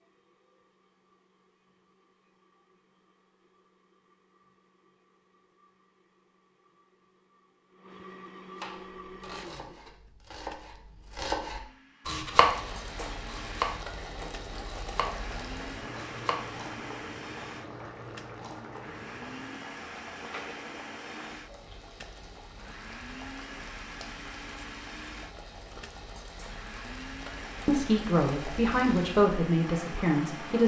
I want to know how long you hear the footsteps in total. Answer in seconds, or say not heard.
not heard.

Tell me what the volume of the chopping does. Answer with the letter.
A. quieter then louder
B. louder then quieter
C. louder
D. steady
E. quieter
B.